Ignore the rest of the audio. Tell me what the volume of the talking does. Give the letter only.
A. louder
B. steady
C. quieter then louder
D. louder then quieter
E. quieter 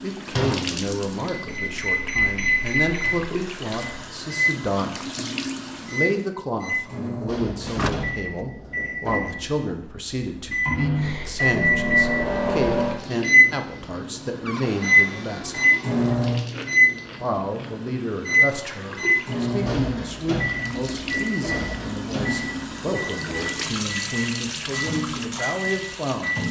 B.